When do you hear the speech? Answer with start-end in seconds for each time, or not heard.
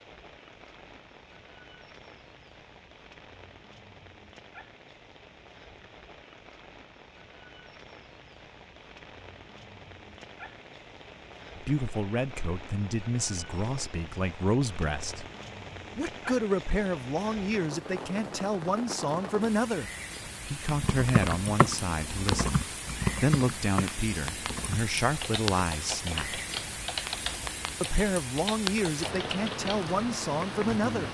11.6-15.2, 15.9-26.4, 27.8-31.0.